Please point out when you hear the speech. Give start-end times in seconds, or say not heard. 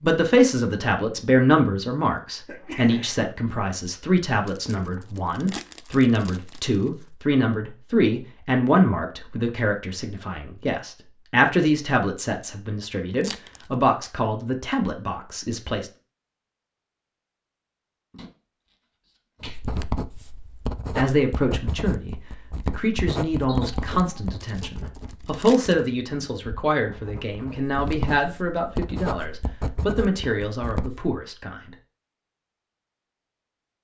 0.0-15.9, 20.9-31.7.